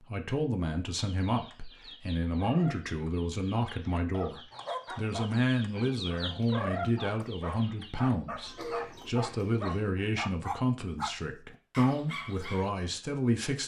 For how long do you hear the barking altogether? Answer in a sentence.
The barking can be heard for 8 seconds in total.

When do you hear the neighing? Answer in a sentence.
You can't hear the neighing here.